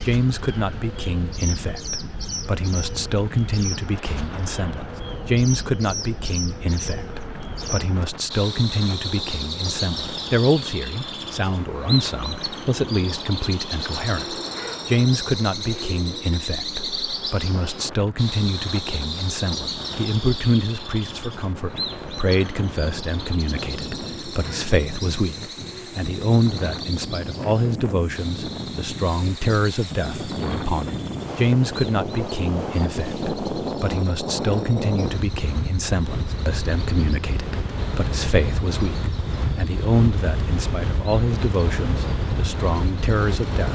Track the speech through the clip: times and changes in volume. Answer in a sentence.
You can hear the speech from 0.1 to 43.7 s, at a steady volume.